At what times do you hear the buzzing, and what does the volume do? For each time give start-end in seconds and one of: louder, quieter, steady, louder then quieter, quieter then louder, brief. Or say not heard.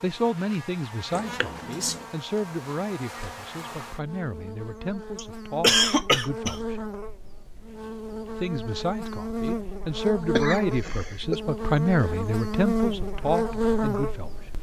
0.0-14.5 louder.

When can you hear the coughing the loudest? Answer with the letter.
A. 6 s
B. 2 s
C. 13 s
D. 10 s
A.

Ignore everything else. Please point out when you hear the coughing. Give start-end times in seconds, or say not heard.
1.1-2.0, 5.2-6.6, 10.3-11.4.